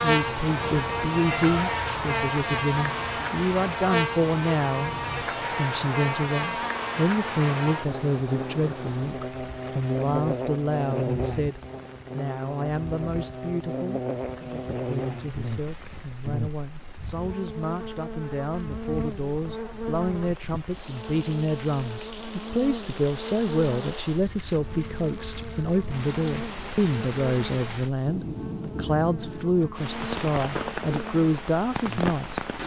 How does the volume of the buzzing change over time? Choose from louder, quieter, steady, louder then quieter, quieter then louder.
quieter.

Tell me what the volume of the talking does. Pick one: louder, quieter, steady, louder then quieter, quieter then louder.
quieter then louder.